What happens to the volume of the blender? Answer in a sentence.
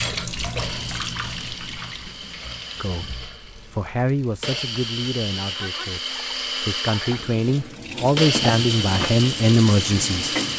The volume of the blender goes up.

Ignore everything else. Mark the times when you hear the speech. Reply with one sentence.
You can hear the speech from 2.8 to 10.3 s.